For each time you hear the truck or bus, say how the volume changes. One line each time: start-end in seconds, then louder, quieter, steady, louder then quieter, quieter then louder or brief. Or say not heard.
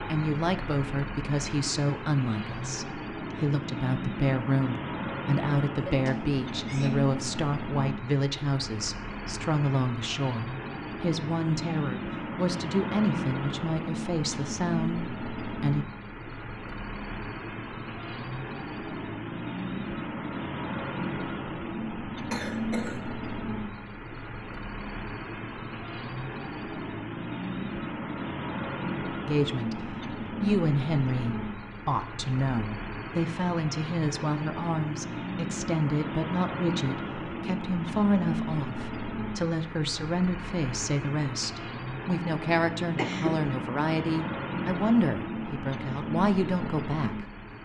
0.0-47.5 steady.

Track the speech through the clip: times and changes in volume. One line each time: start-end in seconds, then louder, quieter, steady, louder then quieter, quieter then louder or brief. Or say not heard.
0.1-15.8 steady
29.2-29.8 brief
30.4-47.2 steady.